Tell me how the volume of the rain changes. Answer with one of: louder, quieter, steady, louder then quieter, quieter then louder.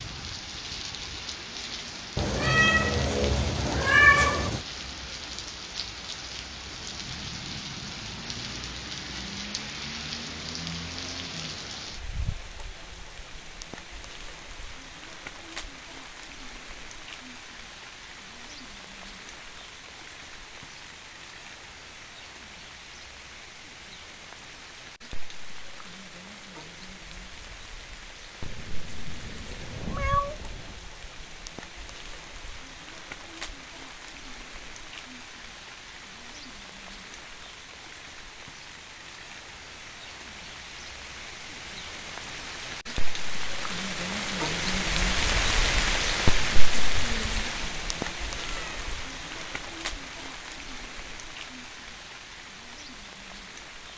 quieter then louder.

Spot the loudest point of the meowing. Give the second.
4 s.